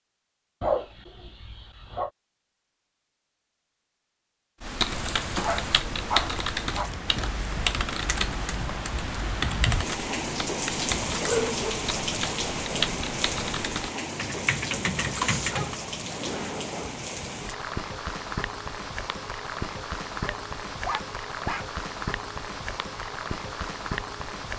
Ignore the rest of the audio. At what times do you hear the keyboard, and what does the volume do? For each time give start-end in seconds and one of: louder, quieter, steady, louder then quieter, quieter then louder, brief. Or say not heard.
4.6-15.8 steady.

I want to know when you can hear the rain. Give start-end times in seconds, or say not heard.
4.8-24.5.